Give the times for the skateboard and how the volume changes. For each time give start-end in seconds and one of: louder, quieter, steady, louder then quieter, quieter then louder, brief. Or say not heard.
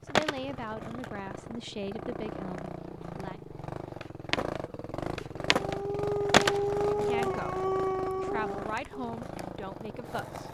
0.1-10.4 louder then quieter.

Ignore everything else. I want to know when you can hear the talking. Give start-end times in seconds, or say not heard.
0.1-3.4, 6.8-10.4.